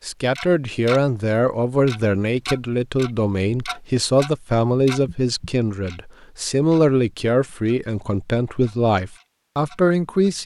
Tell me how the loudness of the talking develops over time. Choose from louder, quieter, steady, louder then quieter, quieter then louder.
steady.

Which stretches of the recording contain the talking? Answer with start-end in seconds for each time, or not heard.
0.0-10.4.